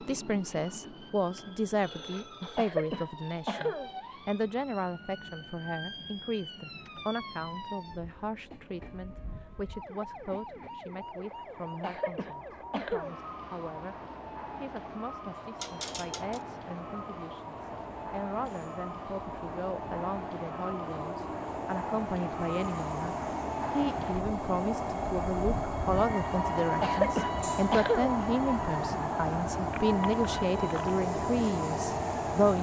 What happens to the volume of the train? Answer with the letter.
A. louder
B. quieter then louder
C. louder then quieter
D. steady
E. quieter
A.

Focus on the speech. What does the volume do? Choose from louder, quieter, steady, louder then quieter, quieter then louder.
quieter then louder.